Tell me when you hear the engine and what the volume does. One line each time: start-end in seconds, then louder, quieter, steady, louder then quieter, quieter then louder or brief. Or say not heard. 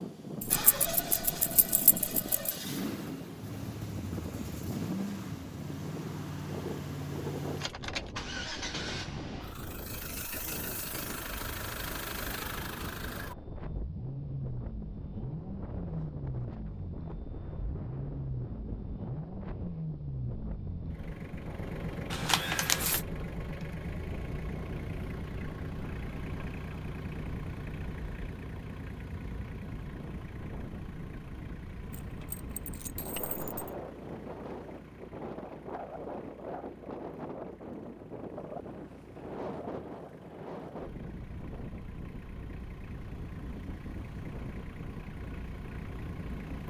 0.0-46.6 quieter.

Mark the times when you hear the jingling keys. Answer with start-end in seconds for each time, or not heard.
0.4-2.5, 22.1-23.0, 31.9-33.8.